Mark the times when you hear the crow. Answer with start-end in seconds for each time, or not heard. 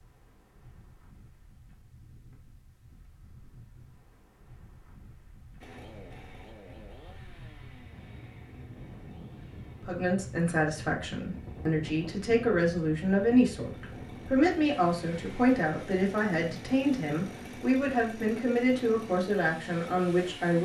not heard.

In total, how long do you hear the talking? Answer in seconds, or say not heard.
11 s.